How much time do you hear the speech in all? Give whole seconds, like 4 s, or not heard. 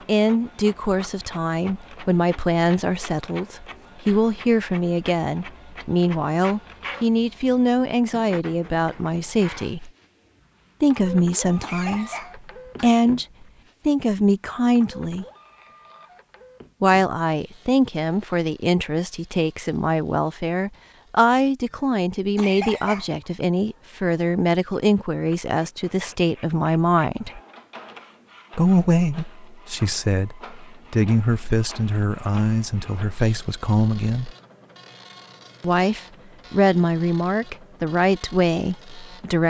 34 s.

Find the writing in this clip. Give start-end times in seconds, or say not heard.
not heard.